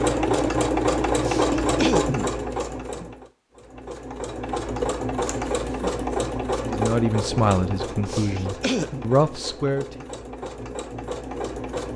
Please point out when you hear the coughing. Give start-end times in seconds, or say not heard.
1.2-2.3, 8.1-9.1.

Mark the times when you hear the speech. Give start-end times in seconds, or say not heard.
6.6-9.9.